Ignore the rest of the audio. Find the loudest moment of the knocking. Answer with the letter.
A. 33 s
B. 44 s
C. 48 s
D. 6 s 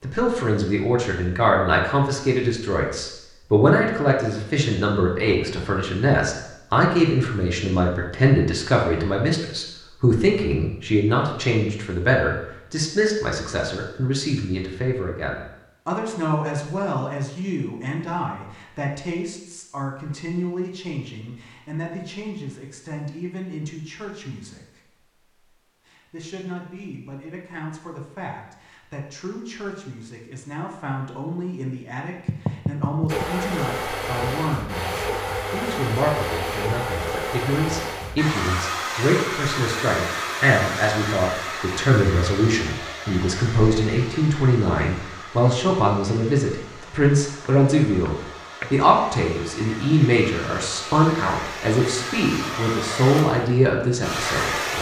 A.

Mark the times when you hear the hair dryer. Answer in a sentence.
You can hear the hair dryer from 33.0 to 54.7 s.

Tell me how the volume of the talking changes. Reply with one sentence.
The volume of the talking goes down, then up.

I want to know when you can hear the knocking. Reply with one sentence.
You can hear the knocking from 5.2 to 5.8 s, from 32.2 to 33.2 s and from 47.5 to 48.8 s.